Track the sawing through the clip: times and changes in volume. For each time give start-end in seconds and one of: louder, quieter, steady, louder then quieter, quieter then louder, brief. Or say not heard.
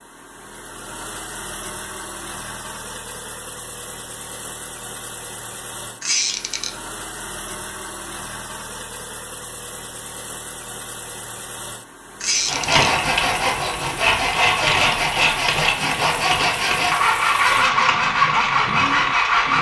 12.4-19.5 steady.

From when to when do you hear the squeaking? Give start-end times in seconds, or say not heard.
6.0-6.7, 12.2-12.9.